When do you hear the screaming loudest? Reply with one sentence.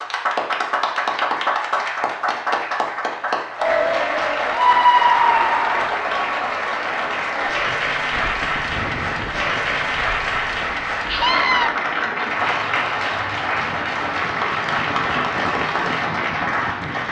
The volume of the screaming peaks at 5 seconds.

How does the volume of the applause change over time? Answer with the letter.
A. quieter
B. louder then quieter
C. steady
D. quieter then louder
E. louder
C.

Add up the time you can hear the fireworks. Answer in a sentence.
The fireworks can't be heard in this clip.